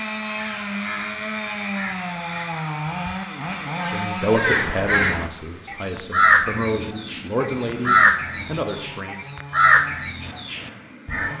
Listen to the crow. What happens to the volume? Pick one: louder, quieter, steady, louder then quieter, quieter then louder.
louder.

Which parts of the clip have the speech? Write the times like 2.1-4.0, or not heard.
3.9-9.2.